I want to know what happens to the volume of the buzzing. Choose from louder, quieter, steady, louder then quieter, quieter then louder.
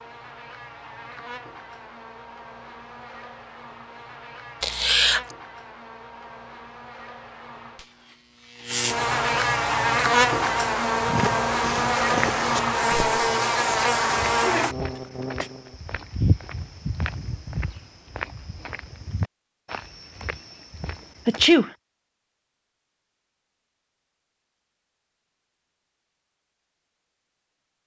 louder.